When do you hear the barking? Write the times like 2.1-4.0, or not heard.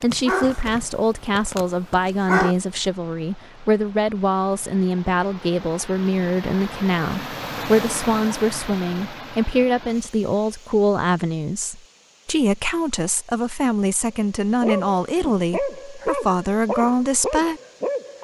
0.0-2.5, 14.6-18.2.